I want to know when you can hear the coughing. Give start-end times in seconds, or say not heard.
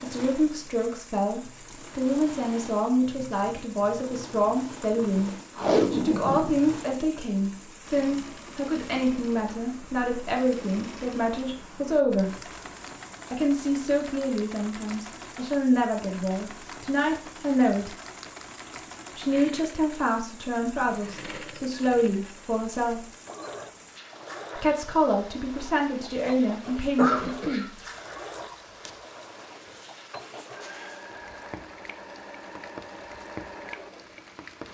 26.9-28.1.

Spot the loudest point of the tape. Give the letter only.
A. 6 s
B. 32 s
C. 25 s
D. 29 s
A.